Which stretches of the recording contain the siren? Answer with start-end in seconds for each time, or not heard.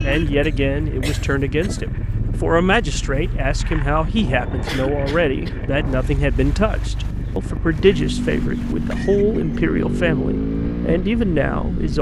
not heard.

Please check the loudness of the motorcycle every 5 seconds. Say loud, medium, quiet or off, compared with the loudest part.
medium, loud, loud.